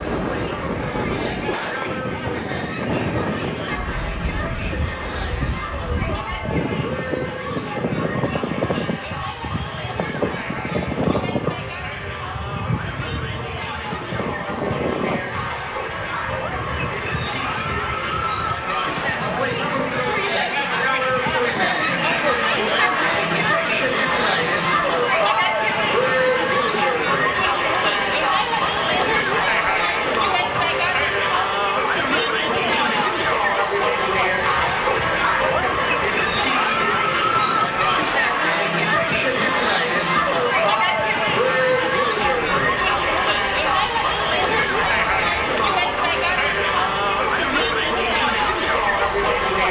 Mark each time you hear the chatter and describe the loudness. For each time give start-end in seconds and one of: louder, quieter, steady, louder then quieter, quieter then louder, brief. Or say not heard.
0.0-49.6 louder.